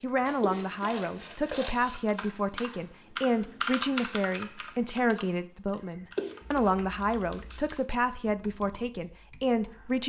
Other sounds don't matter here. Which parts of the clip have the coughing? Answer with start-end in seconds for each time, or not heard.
0.0-1.6, 5.8-6.8.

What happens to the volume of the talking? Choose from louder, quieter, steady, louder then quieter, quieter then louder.
steady.